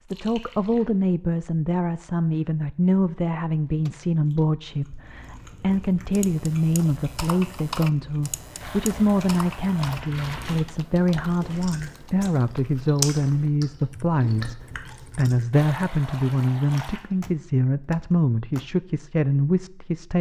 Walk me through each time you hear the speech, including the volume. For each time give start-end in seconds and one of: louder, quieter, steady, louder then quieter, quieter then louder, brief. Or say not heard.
0.0-20.1 steady.